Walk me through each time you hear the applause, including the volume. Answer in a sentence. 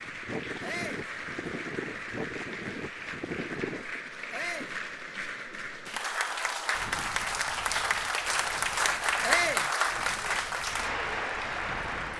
The applause can be heard from 0.0 to 12.1 s, getting louder.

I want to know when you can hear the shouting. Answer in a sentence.
The shouting can be heard from 0.6 to 1.1 s, from 4.3 to 4.8 s and from 9.2 to 9.7 s.